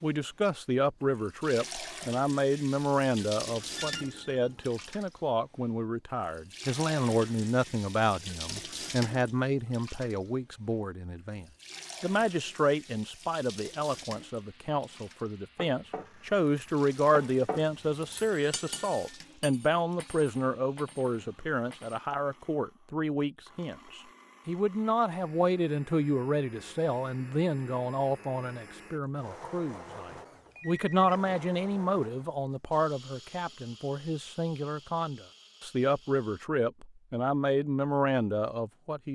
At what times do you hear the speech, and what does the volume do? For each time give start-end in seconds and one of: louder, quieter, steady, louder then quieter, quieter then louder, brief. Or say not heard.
0.0-39.1 steady.